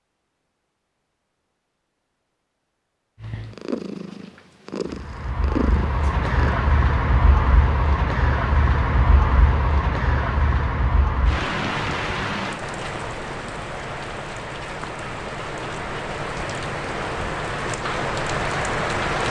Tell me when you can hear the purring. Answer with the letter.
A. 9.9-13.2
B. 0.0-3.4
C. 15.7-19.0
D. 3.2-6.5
D.